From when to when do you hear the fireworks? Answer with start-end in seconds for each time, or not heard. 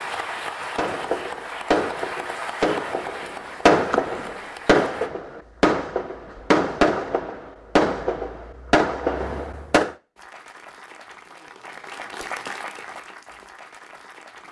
0.8-9.9.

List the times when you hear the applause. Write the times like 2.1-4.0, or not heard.
0.0-5.1, 10.2-14.4.